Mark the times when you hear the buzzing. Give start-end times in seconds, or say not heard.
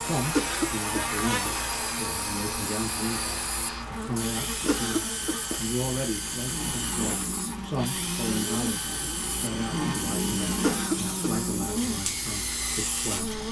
0.0-13.4.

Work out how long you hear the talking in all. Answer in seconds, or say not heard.
13 s.